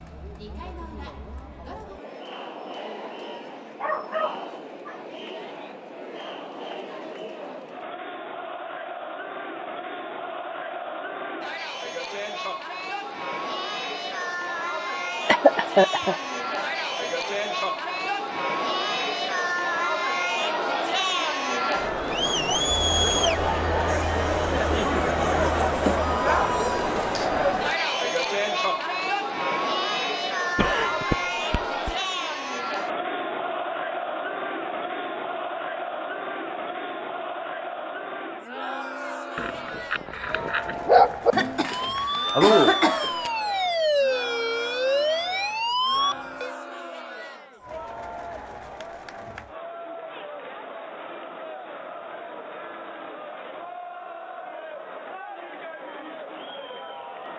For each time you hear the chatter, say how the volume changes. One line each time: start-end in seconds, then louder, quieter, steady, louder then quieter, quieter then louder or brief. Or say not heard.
0.0-57.3 louder then quieter.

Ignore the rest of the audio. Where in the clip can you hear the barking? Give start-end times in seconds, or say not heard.
3.8-5.2, 26.2-28.2, 39.4-41.4.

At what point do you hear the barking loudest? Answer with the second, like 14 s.
41 s.